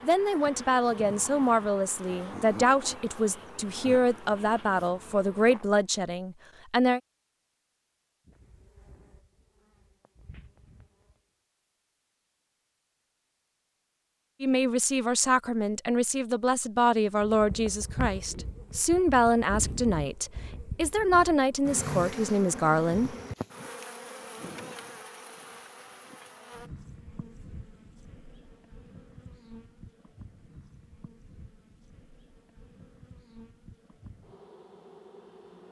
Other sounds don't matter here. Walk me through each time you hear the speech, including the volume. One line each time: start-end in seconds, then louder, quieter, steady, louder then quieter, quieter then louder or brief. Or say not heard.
0.0-7.0 steady
14.4-23.1 steady.